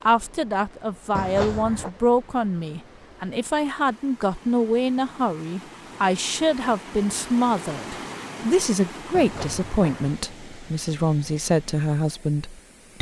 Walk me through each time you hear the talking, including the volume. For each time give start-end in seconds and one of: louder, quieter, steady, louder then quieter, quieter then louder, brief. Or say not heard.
0.0-12.9 steady.